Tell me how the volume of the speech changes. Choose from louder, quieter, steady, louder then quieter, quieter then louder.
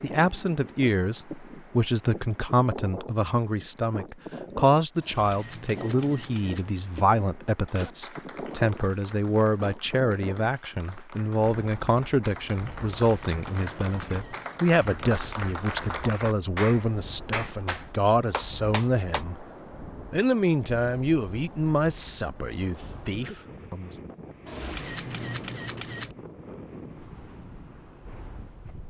steady.